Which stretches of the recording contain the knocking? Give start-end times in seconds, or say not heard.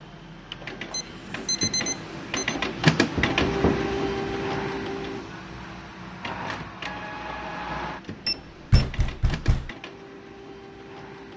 3.1-3.9, 8.7-9.7.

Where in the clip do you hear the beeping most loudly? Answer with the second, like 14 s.
2 s.